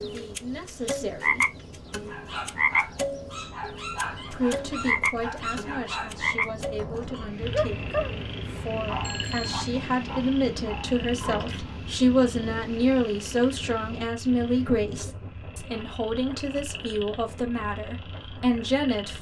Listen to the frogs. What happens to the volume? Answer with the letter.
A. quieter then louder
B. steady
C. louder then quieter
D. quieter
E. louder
D.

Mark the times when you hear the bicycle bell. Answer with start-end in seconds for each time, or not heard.
9.0-9.8.